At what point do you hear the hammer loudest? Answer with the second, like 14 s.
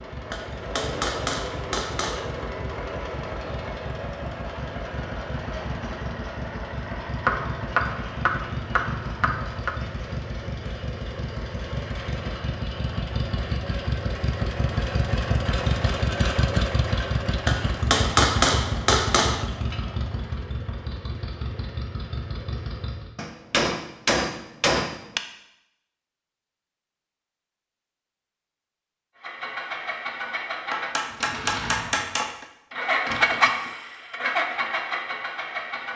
18 s.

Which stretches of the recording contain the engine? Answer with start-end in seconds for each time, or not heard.
0.0-23.1, 29.1-35.9.